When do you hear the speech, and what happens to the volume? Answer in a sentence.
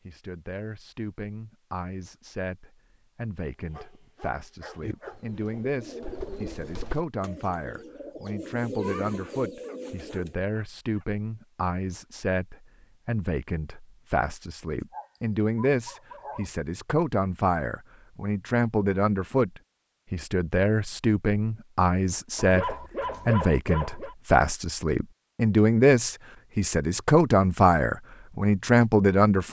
The speech can be heard from 0.1 to 29.4 s, getting louder.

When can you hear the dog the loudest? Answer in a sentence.
The loudest moment of the dog is at 23 seconds.